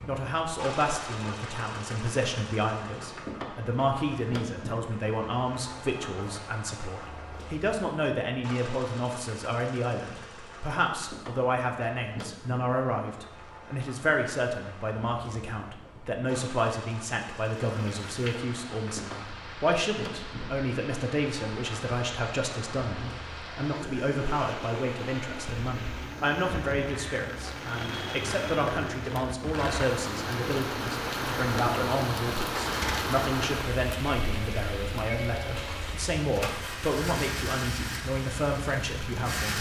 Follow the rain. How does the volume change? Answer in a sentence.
The loudness of the rain goes up, then down.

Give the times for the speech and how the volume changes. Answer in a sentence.
The speech can be heard from 0.1 to 39.5 s, at a steady volume.